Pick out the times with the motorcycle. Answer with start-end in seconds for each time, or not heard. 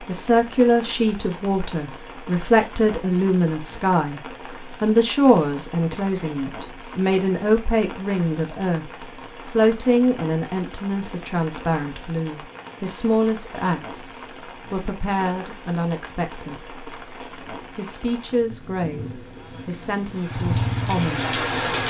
20.2-21.8.